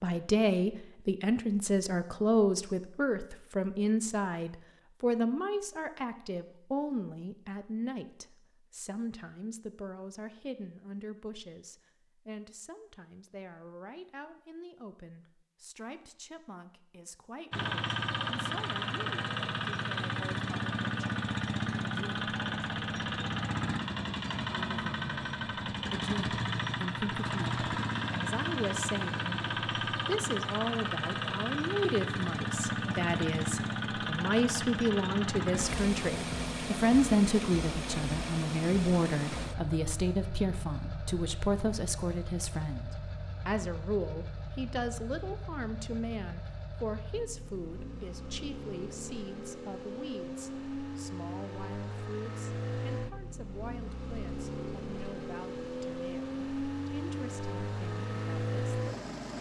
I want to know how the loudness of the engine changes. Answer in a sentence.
The volume of the engine goes down, then up.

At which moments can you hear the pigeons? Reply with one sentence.
The pigeons can't be heard in this clip.